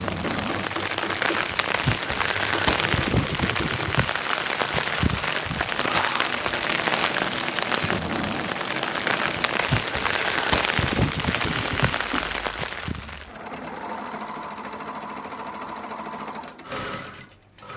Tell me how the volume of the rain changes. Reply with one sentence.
The loudness of the rain stays about the same.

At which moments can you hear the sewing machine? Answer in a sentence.
You can hear the sewing machine from 0.0 to 17.7 s.